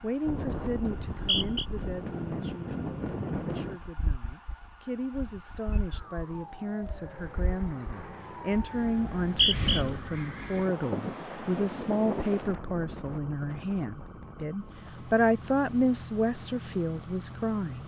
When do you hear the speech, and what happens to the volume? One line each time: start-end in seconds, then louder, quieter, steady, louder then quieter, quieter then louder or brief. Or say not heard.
0.0-17.8 louder.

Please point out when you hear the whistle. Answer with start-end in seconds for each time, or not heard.
0.9-1.6, 9.1-9.8.